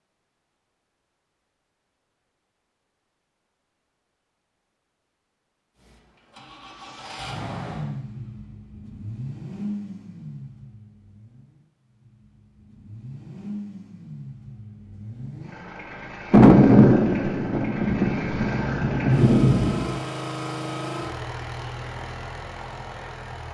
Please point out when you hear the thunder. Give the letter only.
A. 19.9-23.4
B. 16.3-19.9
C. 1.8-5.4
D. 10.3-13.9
B.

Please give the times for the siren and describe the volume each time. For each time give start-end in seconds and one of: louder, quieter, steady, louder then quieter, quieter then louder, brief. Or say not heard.
not heard.